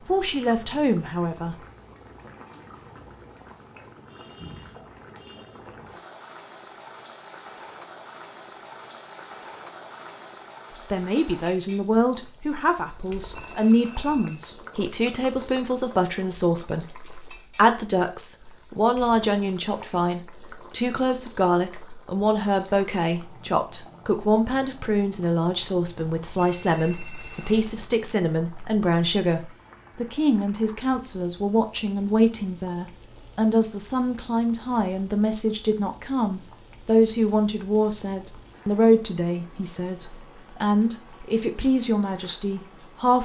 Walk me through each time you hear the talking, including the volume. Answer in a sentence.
You can hear the talking briefly from 0.1 to 1.6 s; and from 10.9 to 43.1 s, at a steady volume.